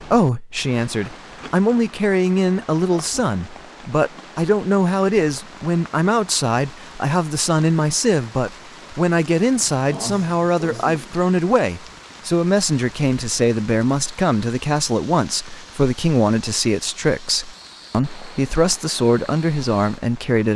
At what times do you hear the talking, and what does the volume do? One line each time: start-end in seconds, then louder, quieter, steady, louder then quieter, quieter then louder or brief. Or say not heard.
0.0-20.5 steady.